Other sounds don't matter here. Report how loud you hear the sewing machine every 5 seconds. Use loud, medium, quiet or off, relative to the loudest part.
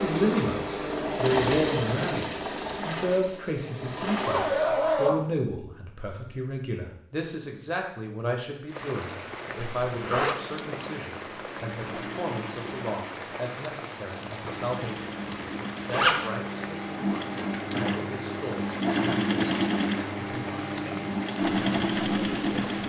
loud, off, quiet, loud, loud.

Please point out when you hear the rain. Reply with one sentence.
The rain can be heard from 8.7 to 22.8 s.